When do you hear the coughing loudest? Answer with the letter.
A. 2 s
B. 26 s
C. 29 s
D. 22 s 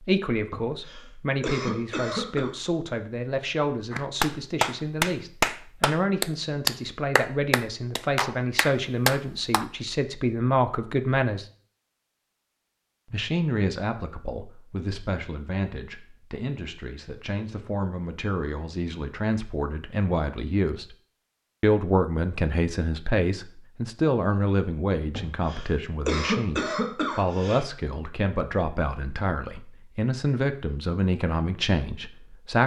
B.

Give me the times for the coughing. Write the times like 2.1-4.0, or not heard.
0.5-2.5, 25.1-27.6.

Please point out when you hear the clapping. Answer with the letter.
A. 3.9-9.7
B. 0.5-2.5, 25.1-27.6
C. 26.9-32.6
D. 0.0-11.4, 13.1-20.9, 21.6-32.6
A.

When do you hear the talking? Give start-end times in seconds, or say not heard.
0.0-11.4, 13.1-20.9, 21.6-32.6.